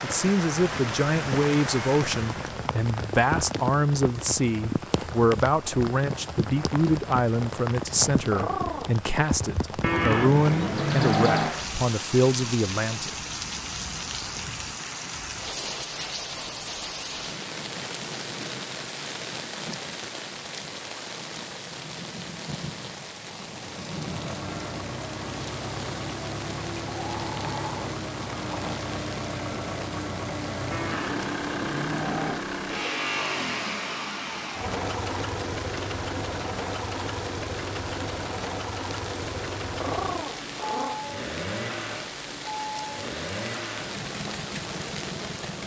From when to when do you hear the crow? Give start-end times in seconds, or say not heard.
not heard.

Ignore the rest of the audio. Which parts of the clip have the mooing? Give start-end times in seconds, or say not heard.
9.8-11.6, 30.7-32.4.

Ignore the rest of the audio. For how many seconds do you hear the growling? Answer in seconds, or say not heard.
4 s.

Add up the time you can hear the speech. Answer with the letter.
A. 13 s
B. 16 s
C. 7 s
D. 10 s
A.